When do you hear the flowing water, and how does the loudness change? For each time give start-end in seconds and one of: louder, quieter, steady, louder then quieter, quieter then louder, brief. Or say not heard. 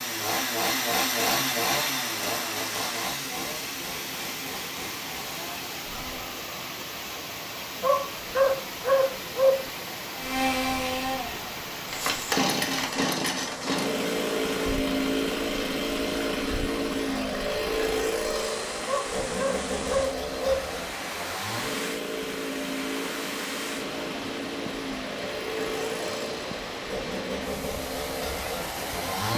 0.0-29.3 steady.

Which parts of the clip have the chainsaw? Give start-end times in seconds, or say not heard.
0.0-6.3, 10.2-29.3.